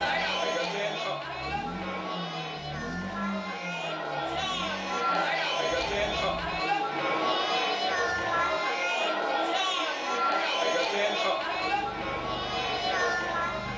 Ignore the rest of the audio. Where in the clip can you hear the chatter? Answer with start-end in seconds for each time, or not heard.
0.0-13.7.